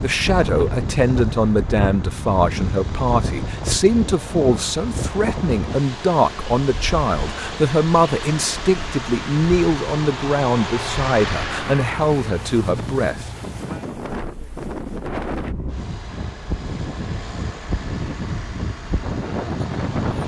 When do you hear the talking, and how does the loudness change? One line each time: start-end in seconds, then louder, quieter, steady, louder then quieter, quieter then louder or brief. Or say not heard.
0.0-13.3 steady.